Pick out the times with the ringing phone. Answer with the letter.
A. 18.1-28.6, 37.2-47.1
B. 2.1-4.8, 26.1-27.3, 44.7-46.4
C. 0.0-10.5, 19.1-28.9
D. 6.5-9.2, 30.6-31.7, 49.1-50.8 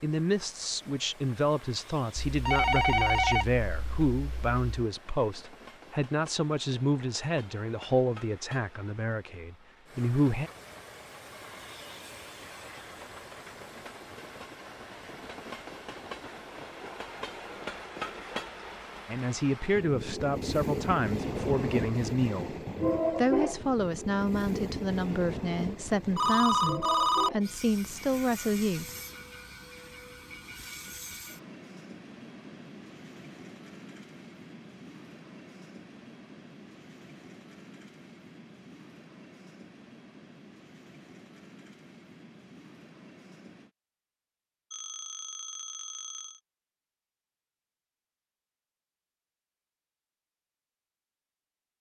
B.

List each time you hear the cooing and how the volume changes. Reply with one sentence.
The cooing can't be heard in this clip.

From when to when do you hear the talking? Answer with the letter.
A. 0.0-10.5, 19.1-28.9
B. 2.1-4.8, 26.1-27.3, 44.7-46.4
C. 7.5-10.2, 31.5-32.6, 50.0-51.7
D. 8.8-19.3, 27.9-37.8
A.